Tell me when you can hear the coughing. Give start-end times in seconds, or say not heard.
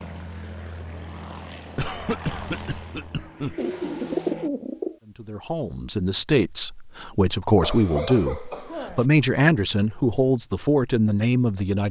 1.8-3.5, 7.6-9.1.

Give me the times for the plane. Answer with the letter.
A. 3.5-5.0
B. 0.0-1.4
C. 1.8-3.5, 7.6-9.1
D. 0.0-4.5
D.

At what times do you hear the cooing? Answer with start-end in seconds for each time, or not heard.
3.5-5.0.